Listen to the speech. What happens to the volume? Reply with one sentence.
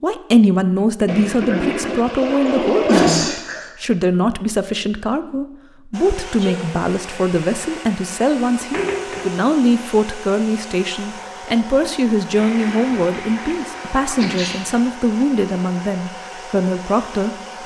The volume of the speech stays about the same.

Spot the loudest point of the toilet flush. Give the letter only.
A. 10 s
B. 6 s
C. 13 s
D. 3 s
D.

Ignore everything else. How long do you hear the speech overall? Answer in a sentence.
You can hear the speech for 17 seconds altogether.